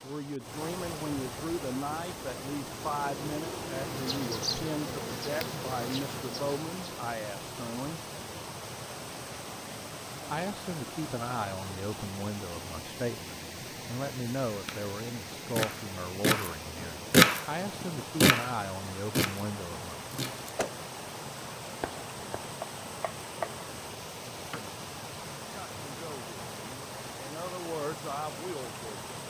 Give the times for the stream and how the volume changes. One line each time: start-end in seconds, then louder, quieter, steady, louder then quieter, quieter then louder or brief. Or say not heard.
0.0-29.2 steady.